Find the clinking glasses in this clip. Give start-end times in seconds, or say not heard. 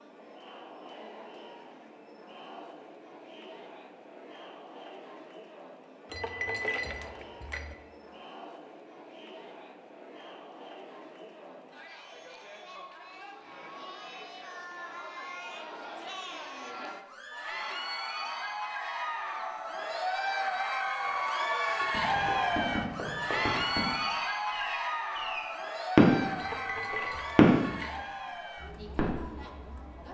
6.1-7.8, 26.4-28.1.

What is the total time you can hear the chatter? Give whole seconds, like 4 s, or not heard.
30 s.